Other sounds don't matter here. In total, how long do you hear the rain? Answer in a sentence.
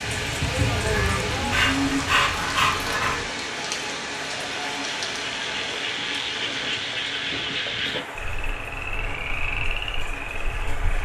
The rain can be heard for 11 seconds in total.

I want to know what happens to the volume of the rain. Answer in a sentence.
The loudness of the rain goes down.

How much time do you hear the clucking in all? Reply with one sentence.
The clucking can't be heard in this clip.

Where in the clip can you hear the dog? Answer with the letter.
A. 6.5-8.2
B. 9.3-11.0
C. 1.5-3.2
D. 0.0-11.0
C.